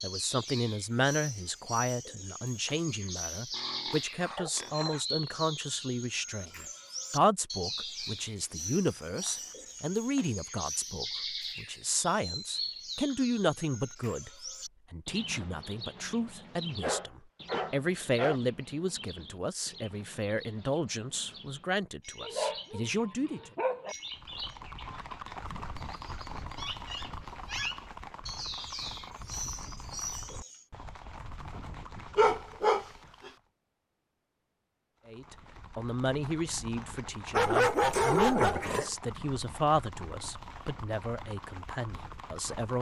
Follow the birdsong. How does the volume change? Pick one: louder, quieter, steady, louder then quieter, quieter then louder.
quieter then louder.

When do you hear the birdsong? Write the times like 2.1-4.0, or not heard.
0.0-30.6.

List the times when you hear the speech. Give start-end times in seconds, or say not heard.
0.0-14.3, 14.9-23.5, 35.0-42.7.